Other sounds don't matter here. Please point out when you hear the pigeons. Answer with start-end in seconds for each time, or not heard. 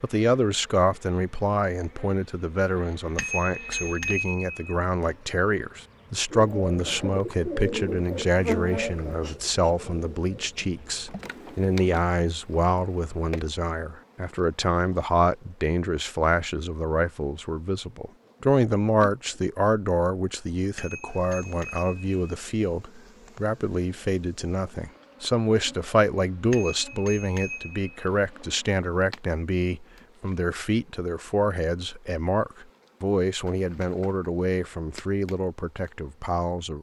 6.3-11.7.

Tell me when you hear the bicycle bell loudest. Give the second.
4 s.